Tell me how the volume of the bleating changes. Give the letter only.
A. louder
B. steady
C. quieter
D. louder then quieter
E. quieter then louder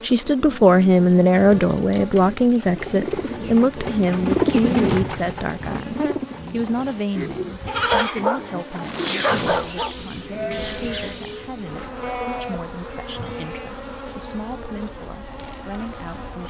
C.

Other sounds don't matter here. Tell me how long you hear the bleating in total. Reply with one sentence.
You can hear the bleating for 7 seconds altogether.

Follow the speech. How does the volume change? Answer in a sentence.
The volume of the speech goes down.